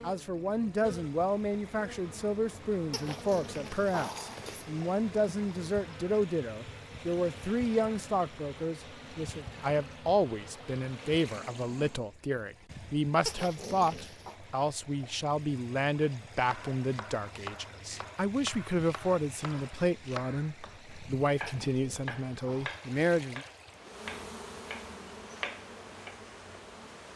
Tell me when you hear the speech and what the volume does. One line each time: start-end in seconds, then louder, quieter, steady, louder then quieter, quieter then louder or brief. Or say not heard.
0.0-23.4 steady.